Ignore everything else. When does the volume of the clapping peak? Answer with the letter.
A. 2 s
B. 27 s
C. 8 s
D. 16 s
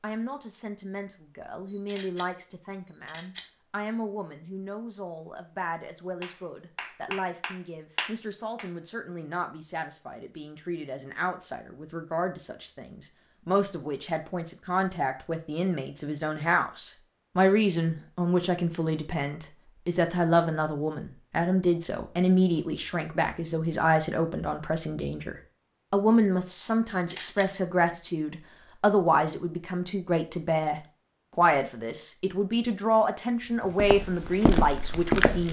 C.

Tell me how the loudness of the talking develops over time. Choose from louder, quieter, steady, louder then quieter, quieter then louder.
louder.